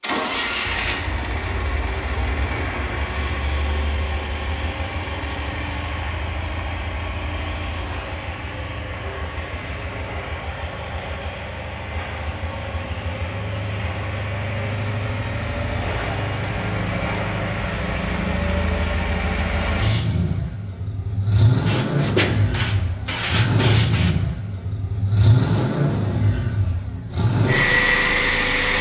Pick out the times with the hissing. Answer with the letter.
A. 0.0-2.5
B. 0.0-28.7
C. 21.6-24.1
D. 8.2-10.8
C.